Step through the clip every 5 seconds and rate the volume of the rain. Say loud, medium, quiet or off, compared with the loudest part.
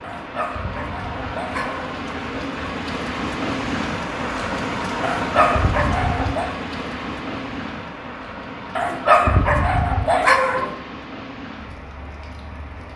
loud, loud, medium.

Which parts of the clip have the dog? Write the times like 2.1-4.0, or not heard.
0.0-2.0, 5.0-6.5, 8.8-10.8.